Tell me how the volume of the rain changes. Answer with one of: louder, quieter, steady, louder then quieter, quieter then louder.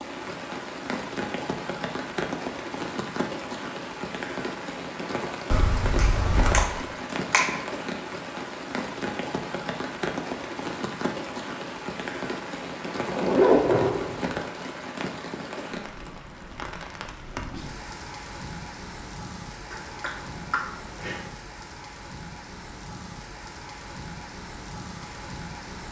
quieter.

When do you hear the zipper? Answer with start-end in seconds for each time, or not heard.
5.5-6.7, 13.1-14.4.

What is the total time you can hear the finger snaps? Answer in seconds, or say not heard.
3 s.